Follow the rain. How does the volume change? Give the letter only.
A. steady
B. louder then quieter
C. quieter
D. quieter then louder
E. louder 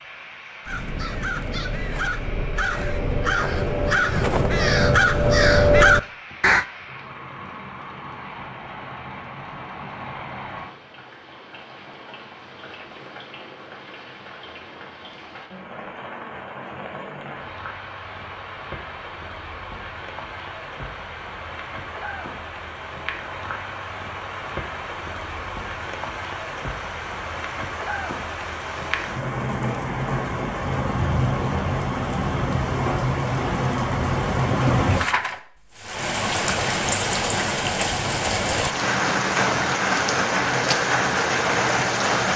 E.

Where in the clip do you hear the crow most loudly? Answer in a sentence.
The loudest moment of the crow is at 6 seconds.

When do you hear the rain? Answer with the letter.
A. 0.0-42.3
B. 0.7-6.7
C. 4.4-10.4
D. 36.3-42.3
A.